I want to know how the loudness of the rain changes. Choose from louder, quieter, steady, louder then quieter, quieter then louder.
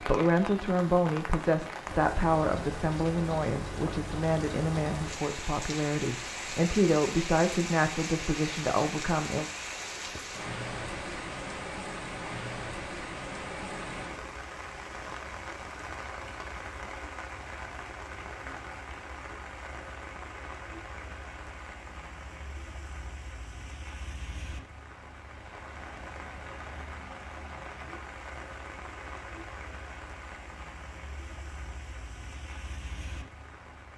quieter.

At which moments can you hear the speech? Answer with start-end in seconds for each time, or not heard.
0.0-9.4.